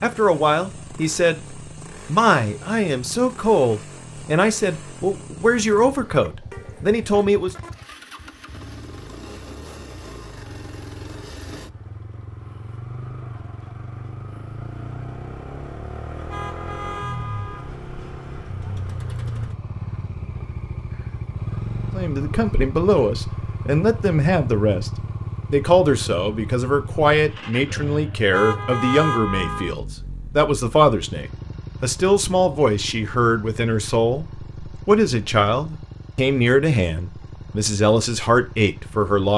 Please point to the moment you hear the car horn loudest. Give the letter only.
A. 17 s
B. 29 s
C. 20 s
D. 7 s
B.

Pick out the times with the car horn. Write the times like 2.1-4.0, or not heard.
5.8-7.7, 16.2-17.7, 28.3-29.8.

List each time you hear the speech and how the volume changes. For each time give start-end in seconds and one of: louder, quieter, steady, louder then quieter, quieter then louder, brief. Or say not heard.
0.0-7.5 steady
21.9-39.3 steady.